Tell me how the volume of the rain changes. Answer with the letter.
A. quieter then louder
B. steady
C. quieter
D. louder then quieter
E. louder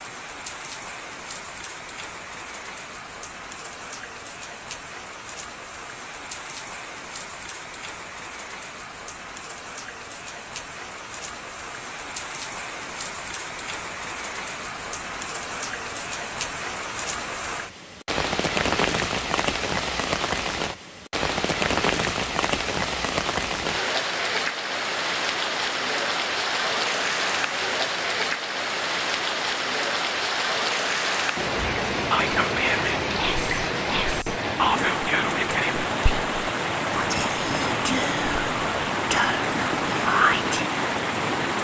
E.